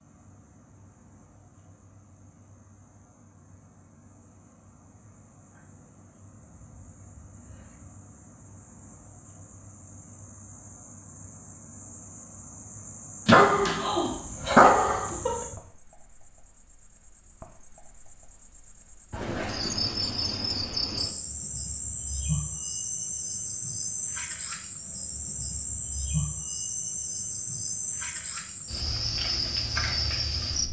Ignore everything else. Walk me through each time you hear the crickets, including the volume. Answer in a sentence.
The crickets can be heard from 0.0 to 30.6 s, getting louder.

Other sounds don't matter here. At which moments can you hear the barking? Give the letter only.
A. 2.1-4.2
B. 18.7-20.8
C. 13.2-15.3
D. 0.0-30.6
C.